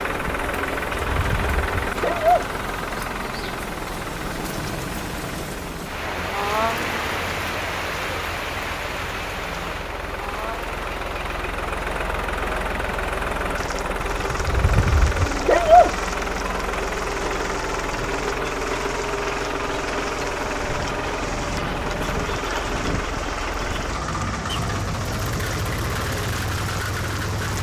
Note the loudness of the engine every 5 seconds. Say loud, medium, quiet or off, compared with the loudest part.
loud, medium, loud, loud, loud, loud.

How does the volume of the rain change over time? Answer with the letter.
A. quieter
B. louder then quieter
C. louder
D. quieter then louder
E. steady
B.